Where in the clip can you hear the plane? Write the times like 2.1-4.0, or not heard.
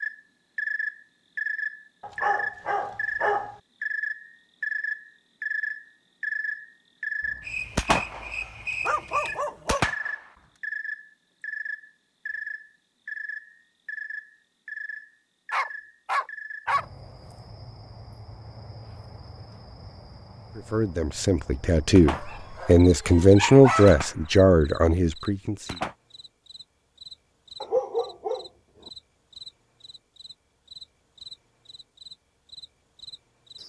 not heard.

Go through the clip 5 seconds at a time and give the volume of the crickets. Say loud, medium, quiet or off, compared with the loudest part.
loud, loud, medium, quiet, quiet, quiet, quiet.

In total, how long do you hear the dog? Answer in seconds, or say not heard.
7 s.